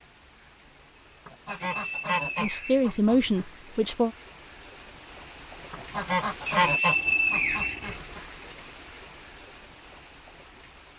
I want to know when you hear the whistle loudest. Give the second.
7 s.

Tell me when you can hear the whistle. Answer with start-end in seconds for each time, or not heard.
1.4-3.0, 6.5-8.0.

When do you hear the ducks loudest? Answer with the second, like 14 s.
7 s.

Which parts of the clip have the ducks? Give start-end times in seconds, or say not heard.
1.2-3.5, 5.7-8.2.